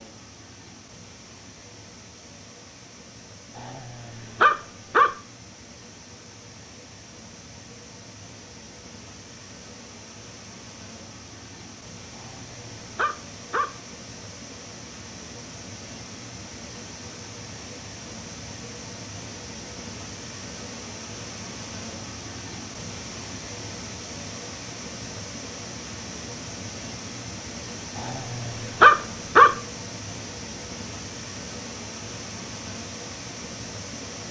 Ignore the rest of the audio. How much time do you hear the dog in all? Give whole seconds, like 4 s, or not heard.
5 s.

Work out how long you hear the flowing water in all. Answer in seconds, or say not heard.
34 s.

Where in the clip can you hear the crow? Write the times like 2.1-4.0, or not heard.
not heard.